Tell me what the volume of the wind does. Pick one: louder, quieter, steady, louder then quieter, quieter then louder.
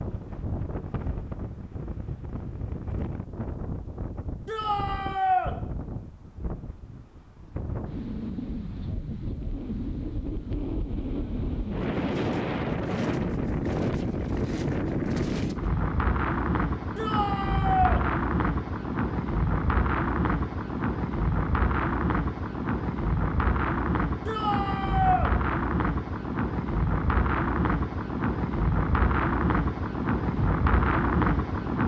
louder.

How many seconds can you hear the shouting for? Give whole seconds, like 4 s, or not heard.
3 s.